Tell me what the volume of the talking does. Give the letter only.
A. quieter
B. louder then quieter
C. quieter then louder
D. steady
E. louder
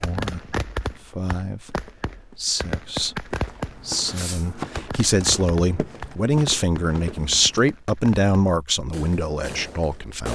E.